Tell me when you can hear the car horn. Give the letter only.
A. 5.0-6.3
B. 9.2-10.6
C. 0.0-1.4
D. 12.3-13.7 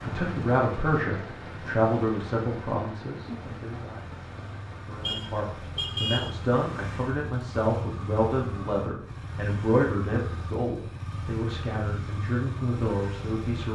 A.